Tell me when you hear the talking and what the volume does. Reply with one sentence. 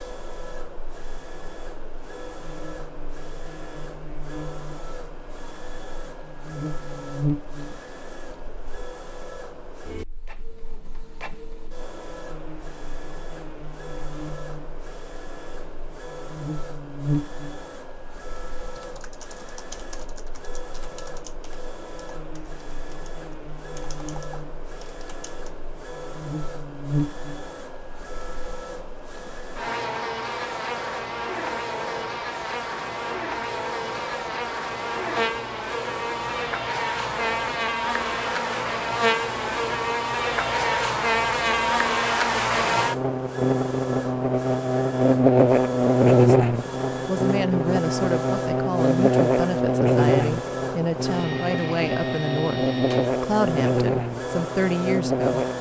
The talking can be heard from 46.2 to 55.5 s, at a steady volume.